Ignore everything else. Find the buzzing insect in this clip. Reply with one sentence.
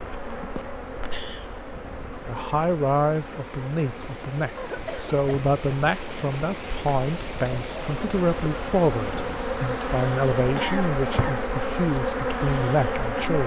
The buzzing insect can be heard from 0.0 to 13.4 s.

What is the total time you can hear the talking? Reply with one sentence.
The talking can be heard for 11 seconds in total.